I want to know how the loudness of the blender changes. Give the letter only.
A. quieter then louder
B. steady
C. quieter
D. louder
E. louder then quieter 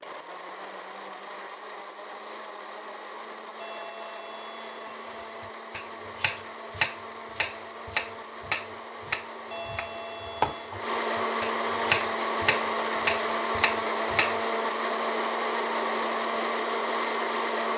D.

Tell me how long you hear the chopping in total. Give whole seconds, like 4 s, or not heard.
9 s.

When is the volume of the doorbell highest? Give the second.
10 s.